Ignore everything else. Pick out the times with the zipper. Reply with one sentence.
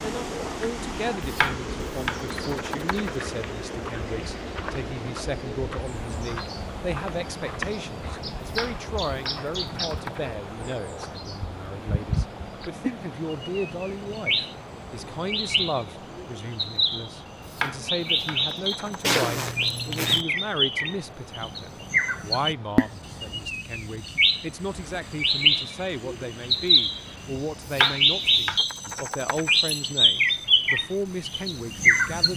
The zipper can be heard from 19.0 to 20.2 s.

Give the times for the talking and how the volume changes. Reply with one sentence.
The talking can be heard from 0.0 to 32.3 s, at a steady volume.